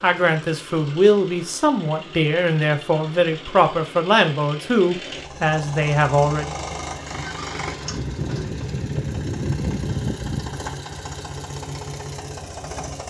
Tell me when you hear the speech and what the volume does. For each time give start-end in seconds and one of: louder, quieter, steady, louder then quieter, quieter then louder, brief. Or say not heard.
0.0-6.5 steady.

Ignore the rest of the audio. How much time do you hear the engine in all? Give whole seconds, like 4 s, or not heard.
13 s.